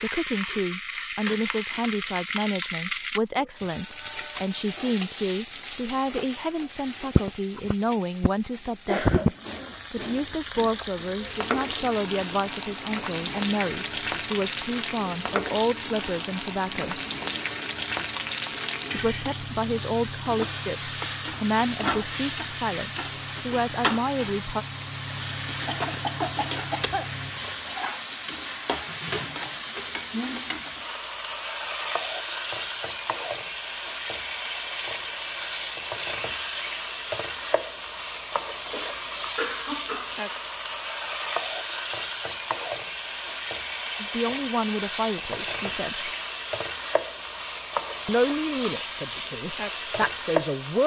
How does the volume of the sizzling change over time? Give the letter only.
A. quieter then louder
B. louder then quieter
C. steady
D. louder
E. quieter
C.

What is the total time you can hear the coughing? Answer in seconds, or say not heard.
4 s.